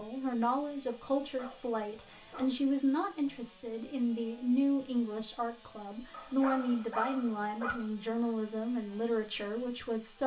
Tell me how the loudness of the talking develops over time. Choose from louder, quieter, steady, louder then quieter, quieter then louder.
steady.